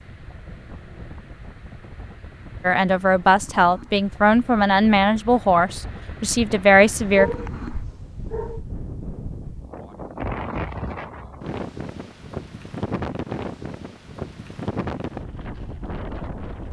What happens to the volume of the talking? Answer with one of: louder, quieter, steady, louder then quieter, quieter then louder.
steady.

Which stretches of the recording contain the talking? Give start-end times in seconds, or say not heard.
2.6-7.3.